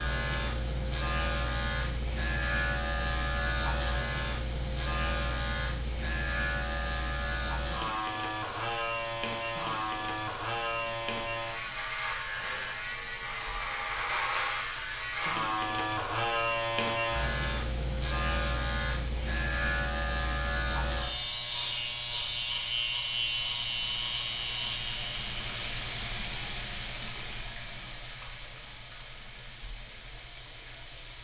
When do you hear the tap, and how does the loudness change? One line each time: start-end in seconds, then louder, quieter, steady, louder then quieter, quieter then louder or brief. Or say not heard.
0.0-31.1 louder.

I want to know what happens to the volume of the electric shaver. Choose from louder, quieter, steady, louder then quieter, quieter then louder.
steady.